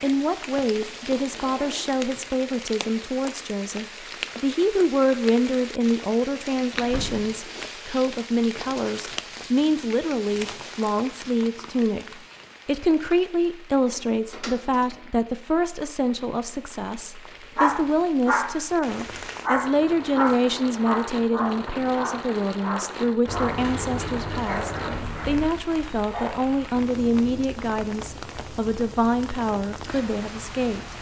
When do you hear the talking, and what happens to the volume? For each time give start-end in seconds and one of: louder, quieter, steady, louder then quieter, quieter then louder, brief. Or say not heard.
0.0-12.1 steady
12.7-30.9 steady.